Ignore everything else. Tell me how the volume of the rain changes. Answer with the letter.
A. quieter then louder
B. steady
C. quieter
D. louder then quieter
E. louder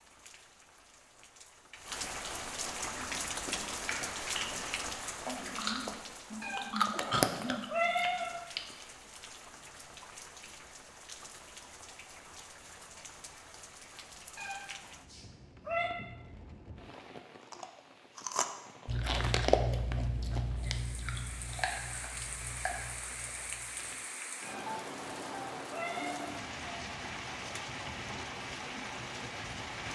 A.